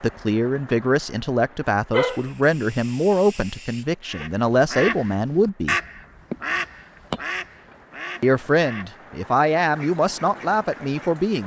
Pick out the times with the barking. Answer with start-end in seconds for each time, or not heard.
1.9-4.2.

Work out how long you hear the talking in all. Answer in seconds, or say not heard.
9 s.